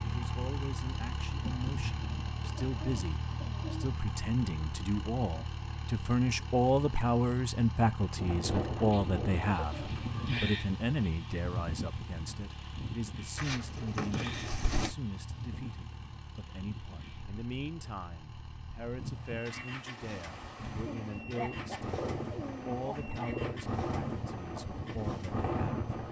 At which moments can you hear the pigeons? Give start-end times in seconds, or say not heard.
1.4-3.9, 8.7-10.4, 13.3-14.9, 20.9-23.6.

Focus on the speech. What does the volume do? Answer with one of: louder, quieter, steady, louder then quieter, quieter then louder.
louder then quieter.